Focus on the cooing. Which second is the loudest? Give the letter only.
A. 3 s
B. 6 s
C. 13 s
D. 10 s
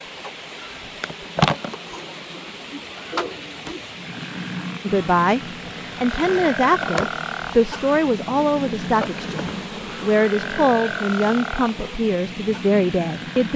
A.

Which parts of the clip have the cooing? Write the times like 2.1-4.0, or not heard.
1.9-3.9.